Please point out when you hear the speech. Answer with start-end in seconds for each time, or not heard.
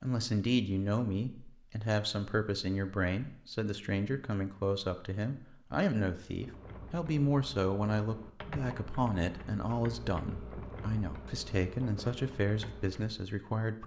0.0-13.8.